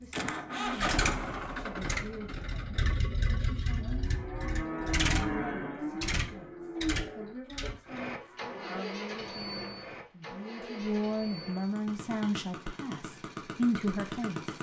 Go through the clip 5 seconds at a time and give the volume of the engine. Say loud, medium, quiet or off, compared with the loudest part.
loud, loud, medium.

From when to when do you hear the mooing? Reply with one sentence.
You can hear the mooing from 3.8 to 8.8 s.